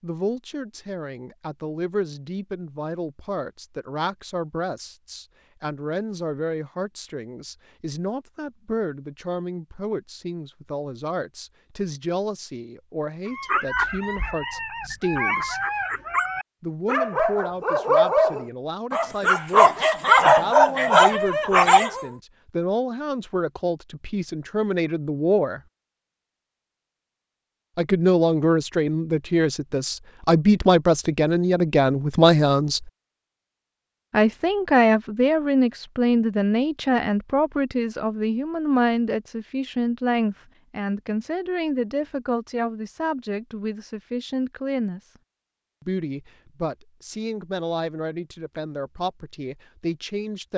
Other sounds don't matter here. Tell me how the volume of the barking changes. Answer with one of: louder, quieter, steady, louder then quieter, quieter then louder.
louder.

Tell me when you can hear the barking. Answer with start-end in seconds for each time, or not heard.
13.2-22.1.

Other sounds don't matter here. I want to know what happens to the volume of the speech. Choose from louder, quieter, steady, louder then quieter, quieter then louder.
louder then quieter.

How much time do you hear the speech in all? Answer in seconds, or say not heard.
45 s.